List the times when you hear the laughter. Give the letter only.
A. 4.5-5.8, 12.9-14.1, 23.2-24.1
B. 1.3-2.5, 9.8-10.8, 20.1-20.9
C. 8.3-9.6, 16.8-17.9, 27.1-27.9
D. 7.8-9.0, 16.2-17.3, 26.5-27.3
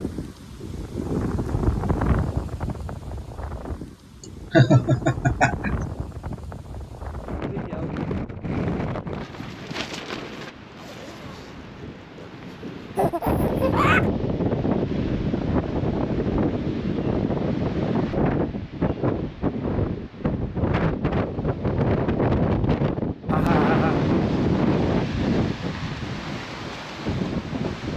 A.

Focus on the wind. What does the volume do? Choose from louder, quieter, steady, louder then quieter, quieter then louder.
louder.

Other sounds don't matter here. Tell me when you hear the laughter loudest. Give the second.
5 s.